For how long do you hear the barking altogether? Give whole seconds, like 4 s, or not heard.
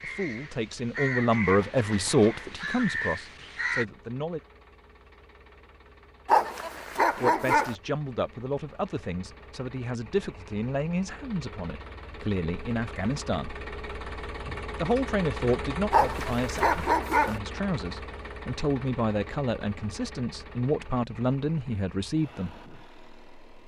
3 s.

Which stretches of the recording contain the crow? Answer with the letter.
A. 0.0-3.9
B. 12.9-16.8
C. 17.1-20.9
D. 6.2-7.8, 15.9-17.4
A.